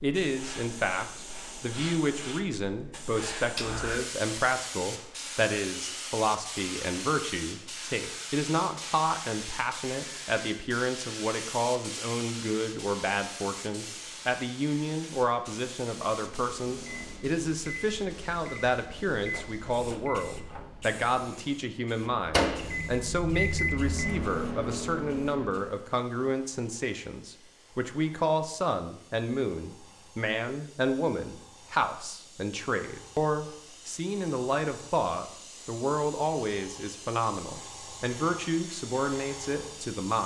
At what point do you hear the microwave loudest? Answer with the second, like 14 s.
23 s.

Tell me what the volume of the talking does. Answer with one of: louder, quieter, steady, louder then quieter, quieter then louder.
steady.